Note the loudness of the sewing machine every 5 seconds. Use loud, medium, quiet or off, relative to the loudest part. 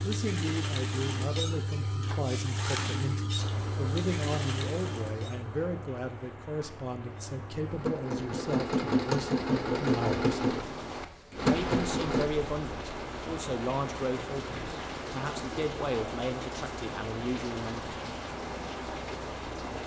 medium, loud, loud, off.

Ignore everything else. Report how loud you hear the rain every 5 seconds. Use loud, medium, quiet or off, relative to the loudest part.
medium, medium, loud, loud.